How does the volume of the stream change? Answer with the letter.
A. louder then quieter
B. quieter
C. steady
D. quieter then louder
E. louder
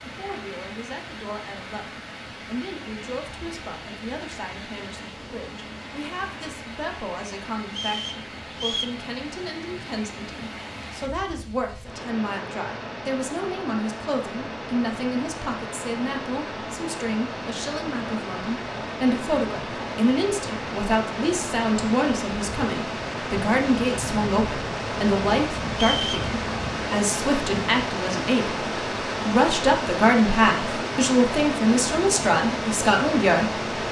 E.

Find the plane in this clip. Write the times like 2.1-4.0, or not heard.
not heard.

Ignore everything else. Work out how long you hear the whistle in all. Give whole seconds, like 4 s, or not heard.
2 s.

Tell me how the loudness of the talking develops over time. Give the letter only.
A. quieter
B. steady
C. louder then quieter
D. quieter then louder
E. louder
E.